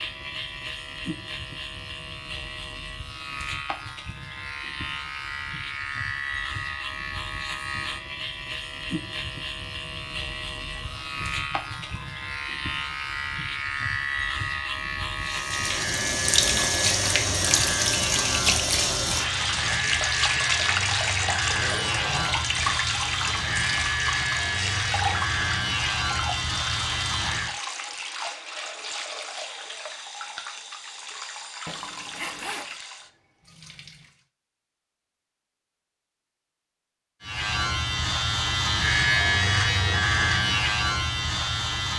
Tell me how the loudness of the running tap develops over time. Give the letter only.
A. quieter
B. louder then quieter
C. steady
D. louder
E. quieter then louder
A.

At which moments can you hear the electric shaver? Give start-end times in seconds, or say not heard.
0.0-27.6, 37.2-41.9.